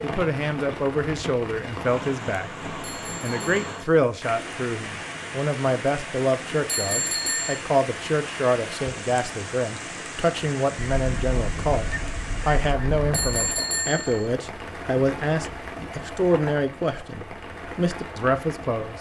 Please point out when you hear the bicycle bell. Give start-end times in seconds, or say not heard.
2.8-3.9, 6.7-7.6, 13.1-14.3.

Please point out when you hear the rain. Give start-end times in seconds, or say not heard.
0.0-18.9.